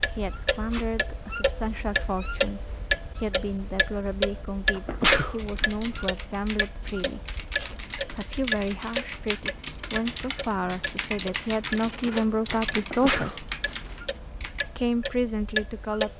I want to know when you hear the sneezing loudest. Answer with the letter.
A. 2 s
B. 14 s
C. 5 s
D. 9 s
C.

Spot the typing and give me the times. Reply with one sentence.
The typing can be heard from 5.3 to 14.8 s.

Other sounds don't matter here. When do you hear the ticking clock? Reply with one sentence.
You can hear the ticking clock from 0.0 to 16.1 s.